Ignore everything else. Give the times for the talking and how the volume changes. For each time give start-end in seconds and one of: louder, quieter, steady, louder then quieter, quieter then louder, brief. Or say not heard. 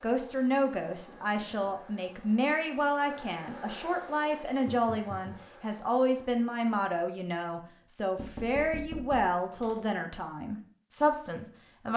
0.0-11.9 steady.